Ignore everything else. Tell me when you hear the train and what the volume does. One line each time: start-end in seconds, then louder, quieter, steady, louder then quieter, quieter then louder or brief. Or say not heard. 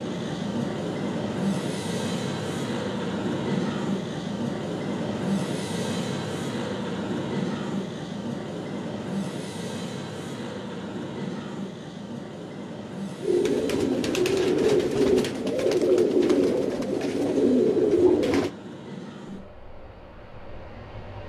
0.0-21.2 quieter.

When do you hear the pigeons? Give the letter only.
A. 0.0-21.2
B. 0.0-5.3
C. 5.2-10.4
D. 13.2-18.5
D.